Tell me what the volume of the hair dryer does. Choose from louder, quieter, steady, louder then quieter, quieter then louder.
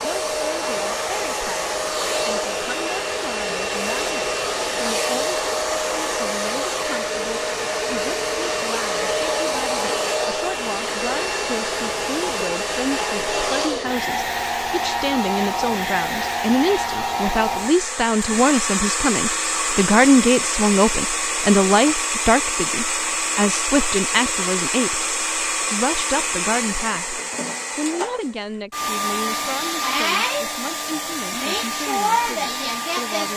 steady.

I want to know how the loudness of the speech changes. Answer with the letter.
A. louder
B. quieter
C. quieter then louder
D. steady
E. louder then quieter
E.